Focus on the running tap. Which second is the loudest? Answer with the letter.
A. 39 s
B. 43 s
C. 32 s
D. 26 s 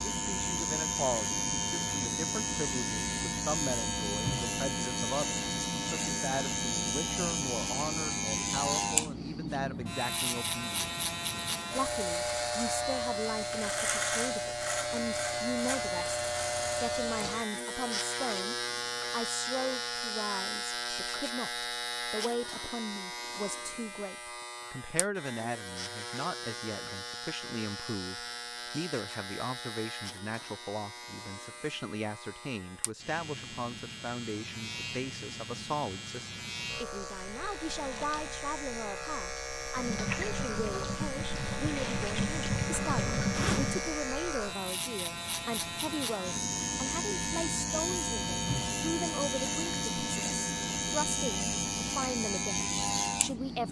B.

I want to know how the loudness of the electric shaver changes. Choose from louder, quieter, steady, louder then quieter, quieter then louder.
quieter then louder.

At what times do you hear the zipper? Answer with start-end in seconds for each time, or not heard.
43.3-44.1.